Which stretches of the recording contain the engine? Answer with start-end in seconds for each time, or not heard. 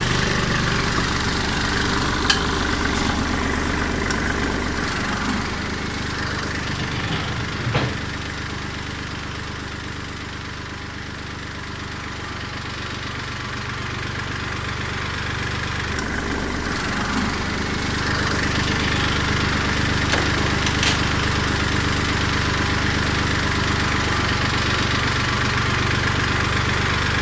0.0-27.1.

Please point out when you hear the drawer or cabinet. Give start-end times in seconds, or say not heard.
6.8-8.1, 20.1-21.1.